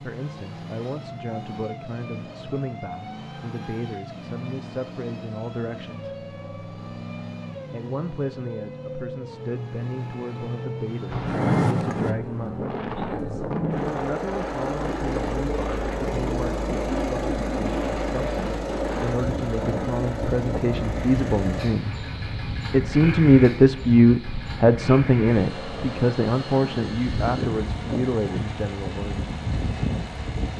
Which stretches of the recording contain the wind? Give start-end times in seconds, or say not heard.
11.1-30.5.